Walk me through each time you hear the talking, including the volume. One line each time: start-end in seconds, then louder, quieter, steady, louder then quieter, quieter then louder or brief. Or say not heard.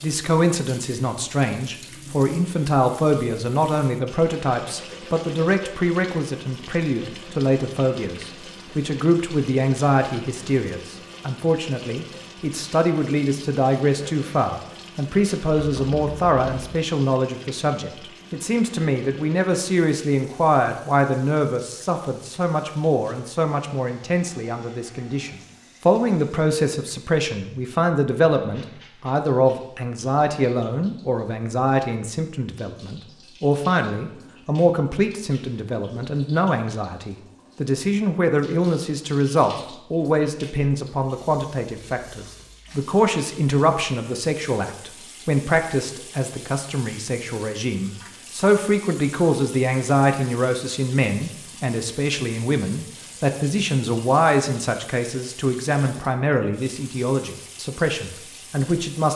0.0-59.1 steady.